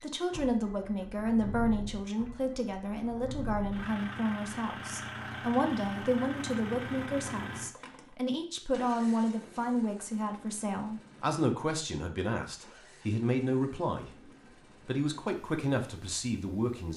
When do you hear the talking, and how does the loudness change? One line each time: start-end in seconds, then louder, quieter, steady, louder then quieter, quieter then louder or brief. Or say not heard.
0.0-16.9 steady.